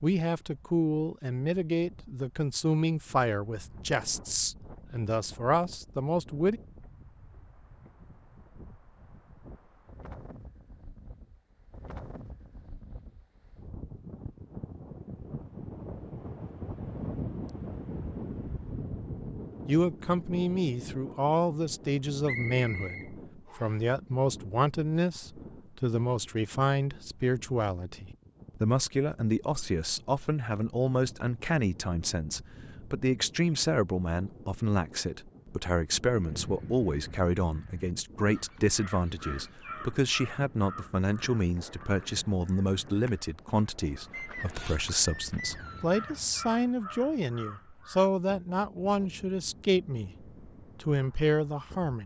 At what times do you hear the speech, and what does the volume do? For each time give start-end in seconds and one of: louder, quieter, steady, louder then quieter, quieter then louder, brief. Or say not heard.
0.0-6.6 steady
19.6-52.0 steady.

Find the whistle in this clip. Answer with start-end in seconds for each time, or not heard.
22.2-23.8, 44.1-46.0.